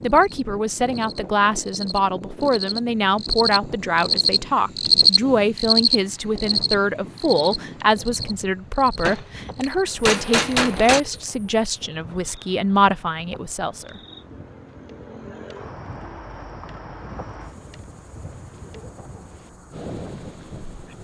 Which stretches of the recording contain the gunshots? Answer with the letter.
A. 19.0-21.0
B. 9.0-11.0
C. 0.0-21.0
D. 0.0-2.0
B.